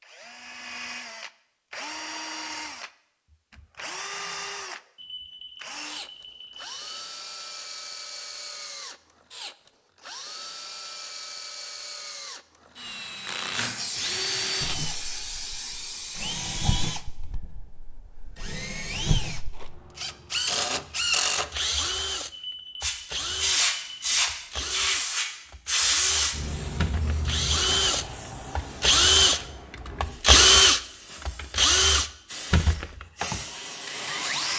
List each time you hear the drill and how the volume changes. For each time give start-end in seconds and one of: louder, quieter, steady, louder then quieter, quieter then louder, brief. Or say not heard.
0.0-34.5 louder.